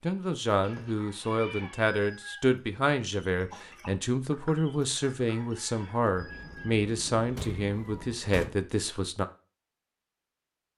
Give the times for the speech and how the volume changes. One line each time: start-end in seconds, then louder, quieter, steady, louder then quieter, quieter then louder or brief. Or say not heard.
0.0-9.2 steady.